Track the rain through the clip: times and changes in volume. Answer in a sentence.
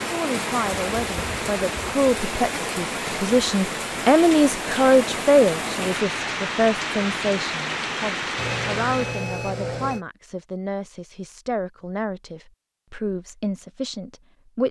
You can hear the rain from 0.0 to 9.3 s, at a steady volume.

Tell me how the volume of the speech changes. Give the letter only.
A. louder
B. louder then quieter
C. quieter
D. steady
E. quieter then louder
B.